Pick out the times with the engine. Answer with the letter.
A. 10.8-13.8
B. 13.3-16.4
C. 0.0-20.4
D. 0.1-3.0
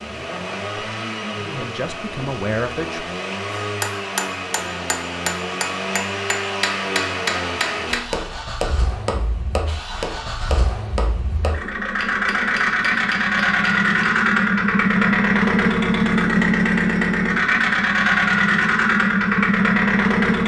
C.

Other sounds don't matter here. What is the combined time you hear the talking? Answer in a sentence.
The talking can be heard for 3 seconds in total.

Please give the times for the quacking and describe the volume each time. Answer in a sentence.
You can't hear the quacking here.